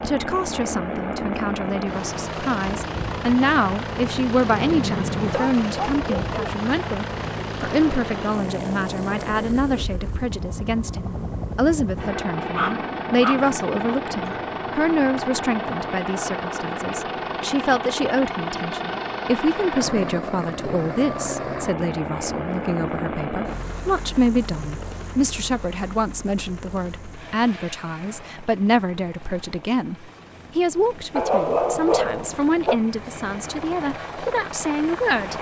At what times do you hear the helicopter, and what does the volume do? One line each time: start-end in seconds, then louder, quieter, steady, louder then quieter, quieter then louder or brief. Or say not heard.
0.0-35.3 quieter.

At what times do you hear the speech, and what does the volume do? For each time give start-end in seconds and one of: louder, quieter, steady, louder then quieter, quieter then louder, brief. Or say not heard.
0.0-35.3 steady.